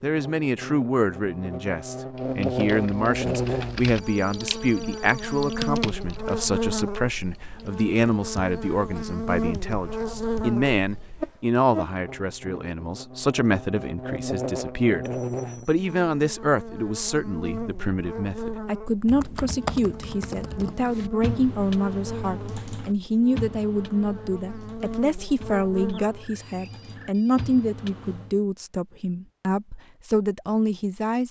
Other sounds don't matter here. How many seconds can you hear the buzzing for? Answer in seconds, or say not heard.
26 s.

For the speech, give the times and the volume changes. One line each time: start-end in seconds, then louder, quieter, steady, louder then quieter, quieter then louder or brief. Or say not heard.
0.0-31.2 steady.